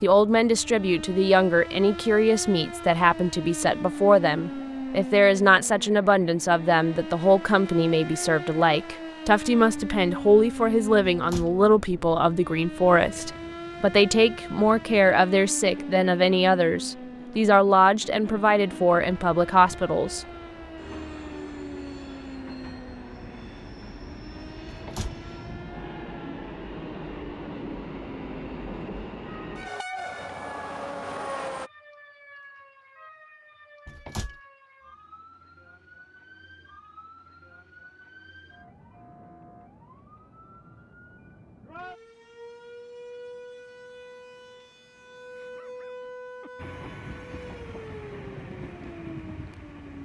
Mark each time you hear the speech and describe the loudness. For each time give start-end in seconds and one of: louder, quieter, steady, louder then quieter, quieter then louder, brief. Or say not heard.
0.0-20.2 steady.